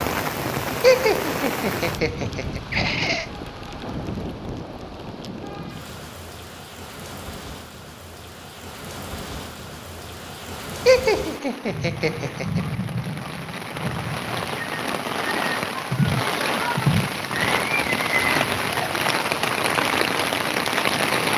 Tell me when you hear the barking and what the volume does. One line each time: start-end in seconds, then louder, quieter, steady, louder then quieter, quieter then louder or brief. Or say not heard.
not heard.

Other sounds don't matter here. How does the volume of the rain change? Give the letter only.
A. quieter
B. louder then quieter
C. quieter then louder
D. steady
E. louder
C.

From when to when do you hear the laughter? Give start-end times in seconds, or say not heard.
0.8-3.2, 10.8-12.6.